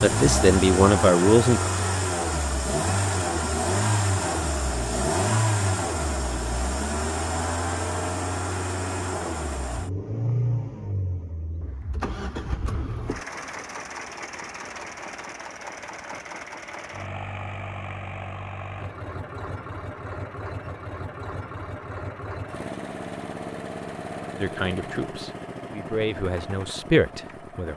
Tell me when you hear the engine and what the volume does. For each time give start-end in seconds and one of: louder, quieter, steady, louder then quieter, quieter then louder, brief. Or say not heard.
0.0-27.7 quieter.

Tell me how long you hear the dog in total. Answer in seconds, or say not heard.
not heard.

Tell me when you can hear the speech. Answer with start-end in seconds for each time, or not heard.
0.0-1.7, 24.4-27.7.